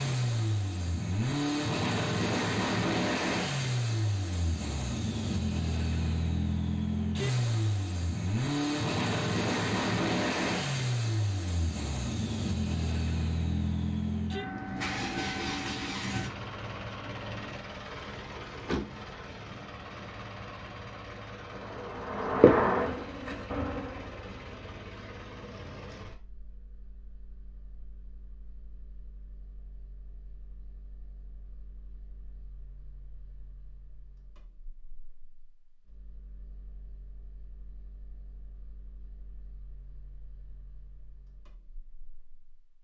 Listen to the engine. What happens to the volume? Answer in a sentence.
The volume of the engine goes down.